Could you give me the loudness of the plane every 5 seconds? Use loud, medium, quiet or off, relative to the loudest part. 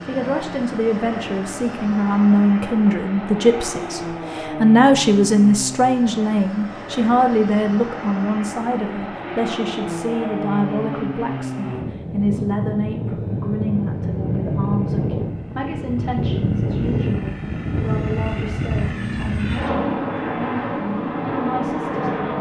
medium, medium, loud, loud, loud.